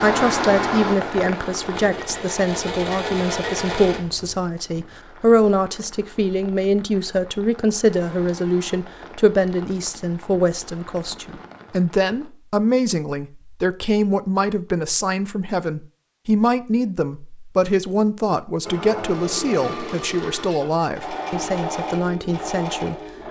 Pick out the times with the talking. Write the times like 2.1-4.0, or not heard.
0.0-22.9.